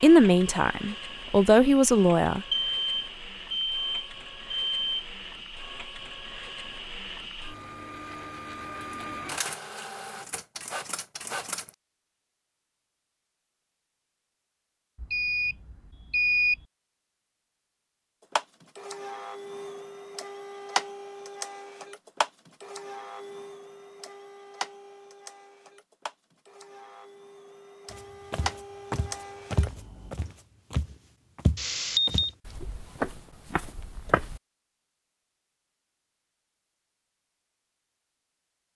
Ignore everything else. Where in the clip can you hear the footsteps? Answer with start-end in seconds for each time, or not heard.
27.9-34.4.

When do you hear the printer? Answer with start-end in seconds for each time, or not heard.
0.0-11.8, 18.2-30.1.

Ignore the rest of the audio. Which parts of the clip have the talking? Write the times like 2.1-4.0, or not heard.
0.0-2.4.